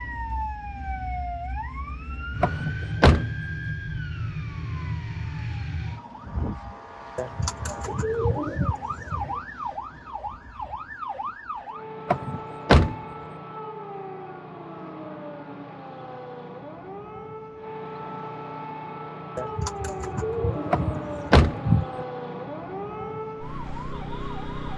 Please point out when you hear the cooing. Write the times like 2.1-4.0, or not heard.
7.2-9.4, 19.4-21.9.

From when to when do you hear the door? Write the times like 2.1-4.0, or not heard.
2.4-3.3, 12.1-12.9, 20.7-22.1.